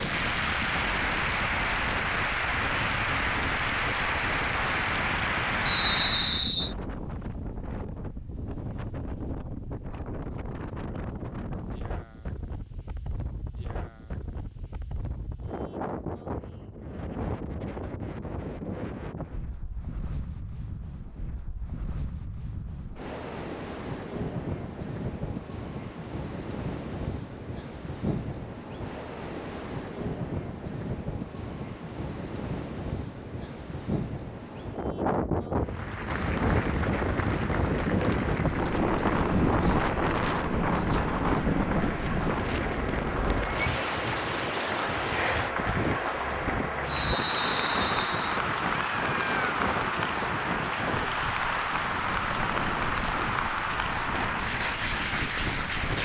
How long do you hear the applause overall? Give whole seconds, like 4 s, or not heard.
27 s.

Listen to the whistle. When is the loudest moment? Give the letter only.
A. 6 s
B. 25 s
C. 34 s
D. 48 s
A.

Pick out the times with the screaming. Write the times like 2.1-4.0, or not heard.
48.6-49.5.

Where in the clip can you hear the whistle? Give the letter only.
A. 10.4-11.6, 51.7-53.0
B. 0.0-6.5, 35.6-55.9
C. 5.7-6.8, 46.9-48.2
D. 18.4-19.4
C.